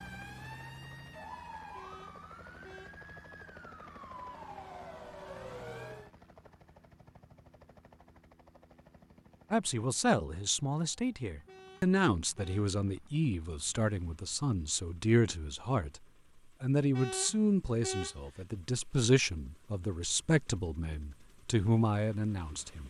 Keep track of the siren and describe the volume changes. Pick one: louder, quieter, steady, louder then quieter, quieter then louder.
quieter then louder.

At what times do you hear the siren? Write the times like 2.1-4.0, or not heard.
0.0-6.1.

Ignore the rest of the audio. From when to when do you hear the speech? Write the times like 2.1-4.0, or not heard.
9.5-16.0, 16.6-22.8.